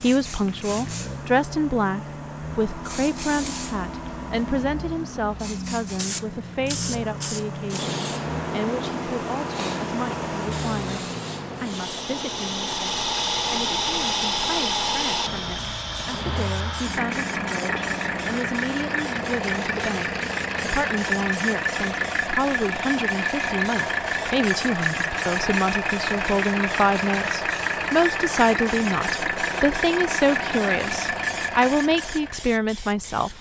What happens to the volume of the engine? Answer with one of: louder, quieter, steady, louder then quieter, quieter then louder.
louder.